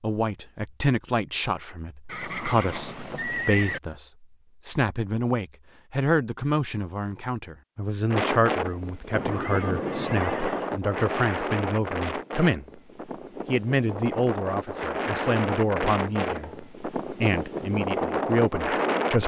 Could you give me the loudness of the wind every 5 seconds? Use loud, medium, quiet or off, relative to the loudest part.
off, loud, loud, loud.